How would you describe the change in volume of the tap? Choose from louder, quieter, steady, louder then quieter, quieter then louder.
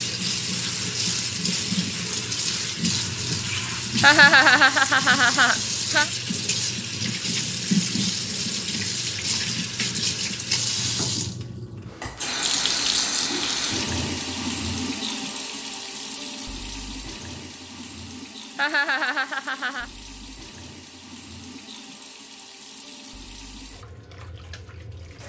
quieter.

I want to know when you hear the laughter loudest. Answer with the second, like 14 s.
4 s.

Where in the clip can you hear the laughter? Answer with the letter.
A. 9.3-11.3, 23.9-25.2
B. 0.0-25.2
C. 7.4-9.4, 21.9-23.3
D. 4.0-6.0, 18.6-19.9
D.